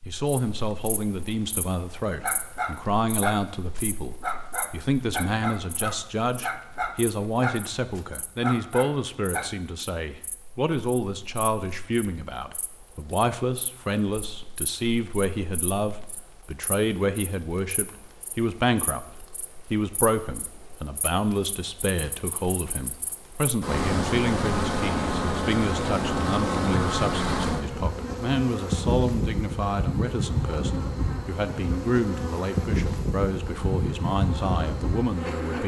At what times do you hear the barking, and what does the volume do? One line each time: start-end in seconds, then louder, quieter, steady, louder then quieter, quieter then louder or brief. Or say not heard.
2.2-9.5 steady.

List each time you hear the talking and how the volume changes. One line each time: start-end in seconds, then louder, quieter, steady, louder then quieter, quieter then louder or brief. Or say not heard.
0.1-35.6 steady.